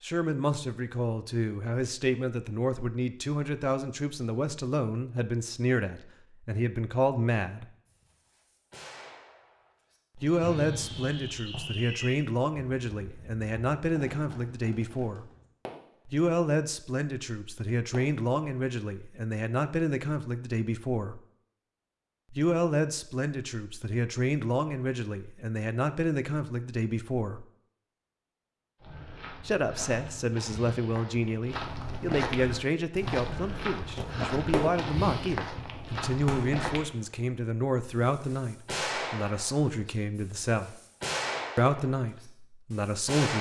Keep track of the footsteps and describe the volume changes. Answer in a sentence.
The loudness of the footsteps goes up.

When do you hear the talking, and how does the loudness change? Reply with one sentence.
You can hear the talking from 0.0 to 7.7 s, at a steady volume; from 10.2 to 15.2 s, at a steady volume; from 16.1 to 21.2 s, at a steady volume; from 22.3 to 27.4 s, at a steady volume; from 29.4 to 40.8 s, at a steady volume; and briefly from 41.5 to 43.3 s.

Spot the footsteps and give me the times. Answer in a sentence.
The footsteps can be heard from 28.8 to 36.9 s.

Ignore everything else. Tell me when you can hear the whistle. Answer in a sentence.
The whistle can be heard from 10.4 to 11.6 s.